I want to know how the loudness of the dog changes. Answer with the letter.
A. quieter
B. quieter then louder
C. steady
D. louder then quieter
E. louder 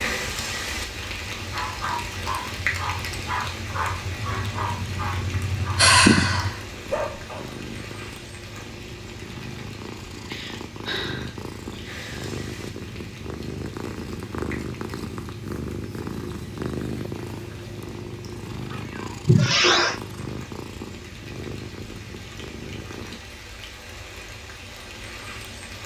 C.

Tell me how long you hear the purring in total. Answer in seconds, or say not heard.
23 s.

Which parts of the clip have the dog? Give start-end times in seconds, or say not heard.
1.4-7.5.